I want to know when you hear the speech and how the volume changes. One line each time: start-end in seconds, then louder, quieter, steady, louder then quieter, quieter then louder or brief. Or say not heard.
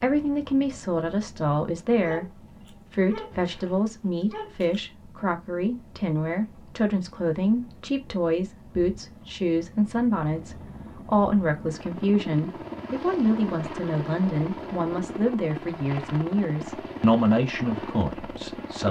0.0-18.8 steady.